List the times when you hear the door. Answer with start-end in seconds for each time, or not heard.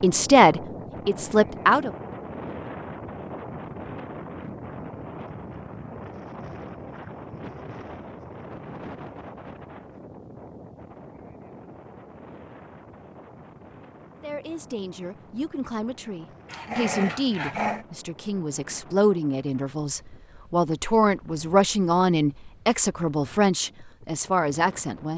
not heard.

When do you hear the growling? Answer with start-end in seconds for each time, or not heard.
16.4-17.9.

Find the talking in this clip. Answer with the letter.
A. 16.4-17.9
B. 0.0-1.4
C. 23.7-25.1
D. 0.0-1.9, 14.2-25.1
D.